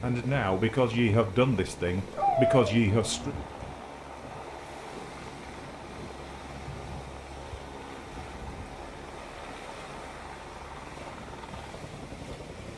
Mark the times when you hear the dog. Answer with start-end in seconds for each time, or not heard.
2.1-3.4.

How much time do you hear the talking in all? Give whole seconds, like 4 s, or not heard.
3 s.